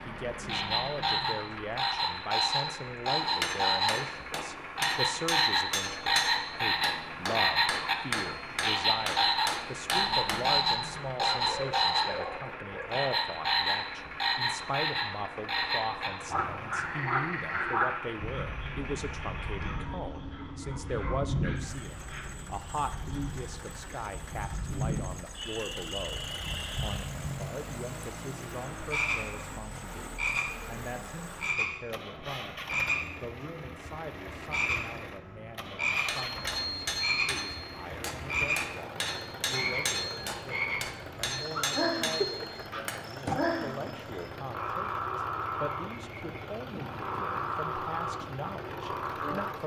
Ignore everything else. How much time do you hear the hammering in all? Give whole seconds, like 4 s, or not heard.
15 s.